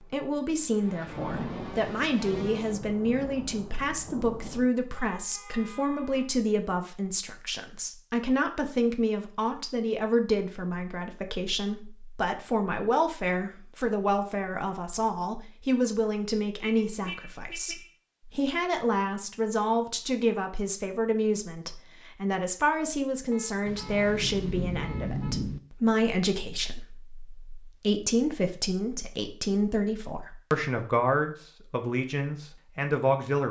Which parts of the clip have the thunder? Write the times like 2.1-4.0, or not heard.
1.1-4.7, 23.6-25.6.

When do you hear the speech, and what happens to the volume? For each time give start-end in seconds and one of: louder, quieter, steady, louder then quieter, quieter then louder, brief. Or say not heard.
0.1-33.4 steady.